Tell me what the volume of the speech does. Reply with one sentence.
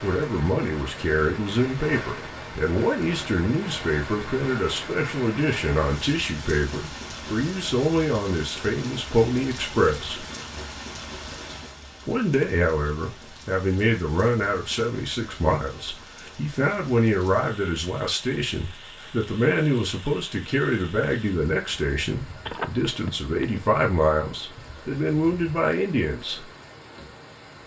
The volume of the speech stays about the same.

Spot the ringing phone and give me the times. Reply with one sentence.
You can hear the ringing phone from 22.4 to 23.6 s.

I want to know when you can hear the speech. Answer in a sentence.
You can hear the speech from 0.0 to 10.2 s and from 12.1 to 26.5 s.